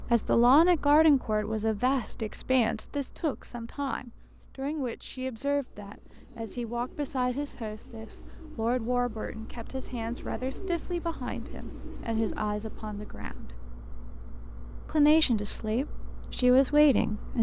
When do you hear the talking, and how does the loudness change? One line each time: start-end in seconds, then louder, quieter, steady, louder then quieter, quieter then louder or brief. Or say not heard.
0.1-13.6 quieter
14.8-17.3 brief.